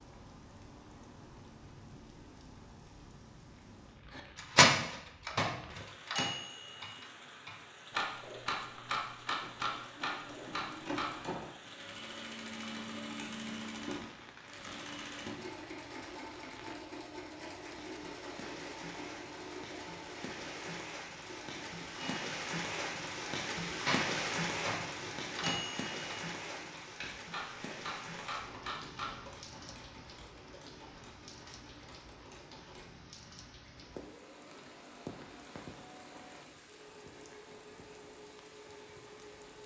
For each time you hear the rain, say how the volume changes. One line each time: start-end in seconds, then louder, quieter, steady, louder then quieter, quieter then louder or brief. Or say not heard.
0.0-39.6 louder then quieter.